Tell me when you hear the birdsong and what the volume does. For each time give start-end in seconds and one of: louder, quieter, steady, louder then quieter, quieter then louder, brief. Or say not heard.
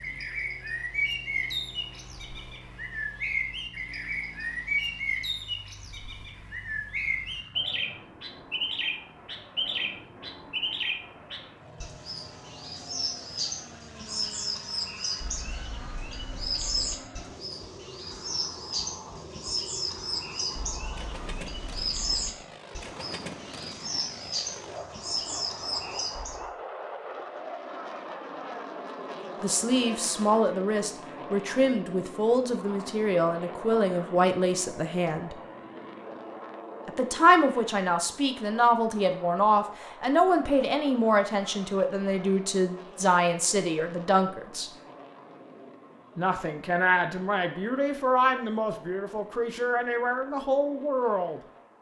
0.0-26.5 steady.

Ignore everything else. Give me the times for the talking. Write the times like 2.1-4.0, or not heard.
29.4-35.4, 36.9-44.7, 46.1-51.4.